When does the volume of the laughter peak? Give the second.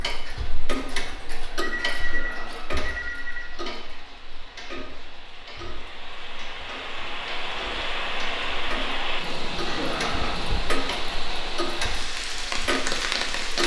10 s.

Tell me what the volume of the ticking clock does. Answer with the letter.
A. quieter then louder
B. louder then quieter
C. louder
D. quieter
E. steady
A.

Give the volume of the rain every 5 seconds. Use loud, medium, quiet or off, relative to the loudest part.
quiet, loud, loud.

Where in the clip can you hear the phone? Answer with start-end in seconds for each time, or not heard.
0.9-3.5.